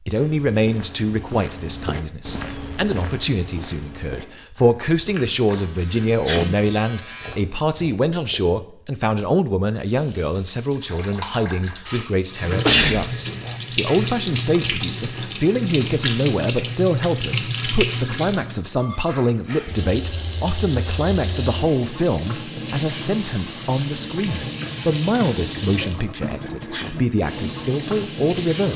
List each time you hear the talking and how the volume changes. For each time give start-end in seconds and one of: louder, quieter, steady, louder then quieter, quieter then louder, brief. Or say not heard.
0.1-28.7 steady.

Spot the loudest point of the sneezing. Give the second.
13 s.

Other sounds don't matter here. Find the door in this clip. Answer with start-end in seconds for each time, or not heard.
not heard.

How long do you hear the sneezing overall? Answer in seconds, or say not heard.
2 s.